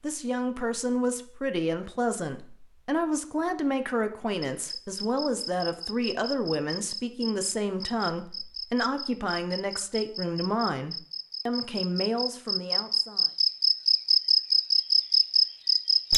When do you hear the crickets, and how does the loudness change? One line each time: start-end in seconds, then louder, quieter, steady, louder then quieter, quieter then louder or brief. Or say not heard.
4.4-16.1 louder.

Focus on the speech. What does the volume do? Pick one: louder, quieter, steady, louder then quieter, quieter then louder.
steady.